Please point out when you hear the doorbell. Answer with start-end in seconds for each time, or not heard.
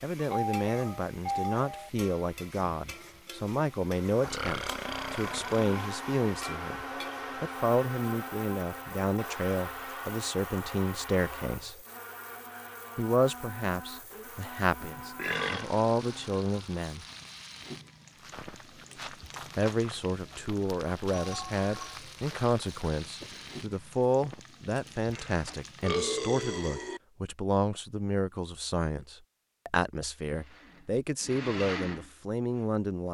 0.3-1.9, 21.1-21.9.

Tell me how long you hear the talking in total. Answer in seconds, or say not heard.
29 s.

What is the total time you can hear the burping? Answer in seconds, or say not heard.
4 s.